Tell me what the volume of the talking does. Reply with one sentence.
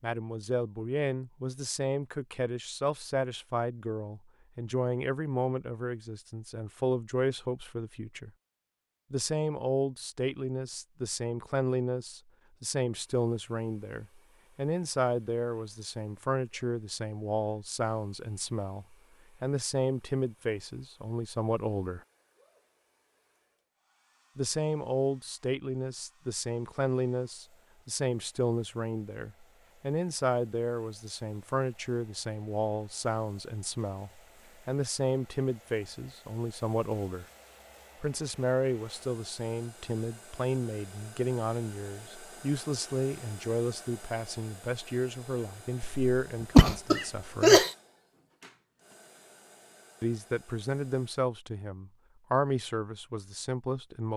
The loudness of the talking stays about the same.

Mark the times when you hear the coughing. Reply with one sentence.
The coughing can be heard from 45.8 to 47.7 s.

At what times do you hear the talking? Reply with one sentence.
You can hear the talking from 0.0 to 8.3 s, from 9.1 to 22.0 s, from 24.4 to 37.2 s, from 38.0 to 47.6 s and from 50.0 to 54.1 s.